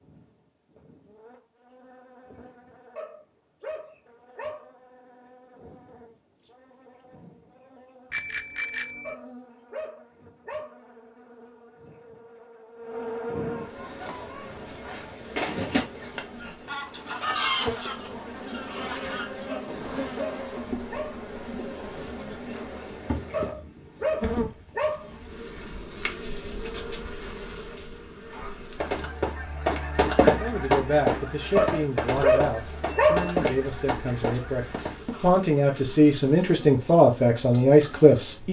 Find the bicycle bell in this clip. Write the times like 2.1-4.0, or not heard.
8.1-9.2, 32.9-33.5.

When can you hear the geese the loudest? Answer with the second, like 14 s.
30 s.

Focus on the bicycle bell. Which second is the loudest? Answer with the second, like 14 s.
9 s.